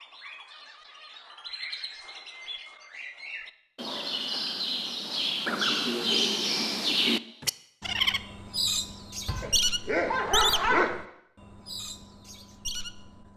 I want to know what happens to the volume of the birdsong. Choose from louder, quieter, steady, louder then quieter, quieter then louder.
louder then quieter.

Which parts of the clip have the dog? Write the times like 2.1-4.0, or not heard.
9.2-10.9.